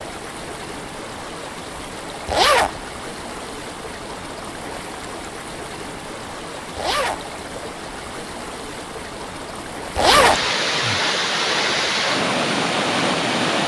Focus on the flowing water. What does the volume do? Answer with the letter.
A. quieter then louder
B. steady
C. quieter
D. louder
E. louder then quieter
D.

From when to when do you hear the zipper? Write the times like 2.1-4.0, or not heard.
2.2-2.8, 6.8-7.2, 9.9-10.4.